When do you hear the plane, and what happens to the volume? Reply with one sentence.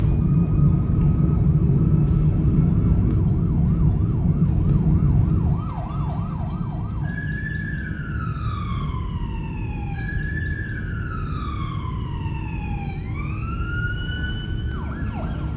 The plane can be heard from 0.0 to 15.5 s, getting quieter.